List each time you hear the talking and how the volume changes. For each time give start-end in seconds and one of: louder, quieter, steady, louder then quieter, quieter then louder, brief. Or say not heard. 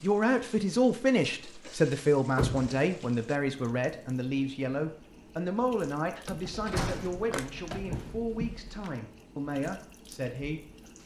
0.0-10.8 quieter.